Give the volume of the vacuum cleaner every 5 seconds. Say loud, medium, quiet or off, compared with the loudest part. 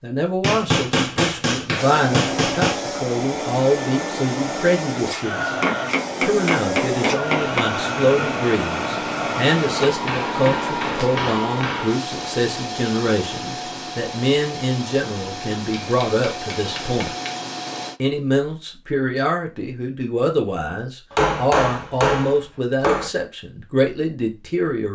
loud, loud, loud, medium, off.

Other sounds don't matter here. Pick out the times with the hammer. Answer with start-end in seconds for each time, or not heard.
0.4-2.8, 5.6-7.7, 10.1-12.0, 15.6-17.4, 21.1-23.1.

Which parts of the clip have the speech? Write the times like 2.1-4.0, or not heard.
0.0-5.5, 6.2-17.1, 18.0-24.8.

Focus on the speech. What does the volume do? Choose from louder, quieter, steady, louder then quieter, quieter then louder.
steady.